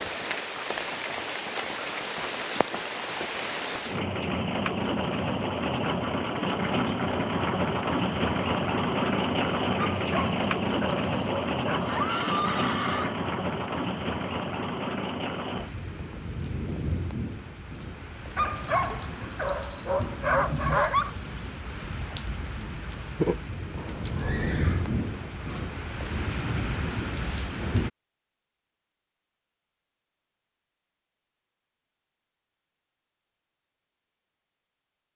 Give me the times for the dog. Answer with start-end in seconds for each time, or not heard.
9.8-11.8, 18.4-21.1.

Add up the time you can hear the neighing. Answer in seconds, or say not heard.
3 s.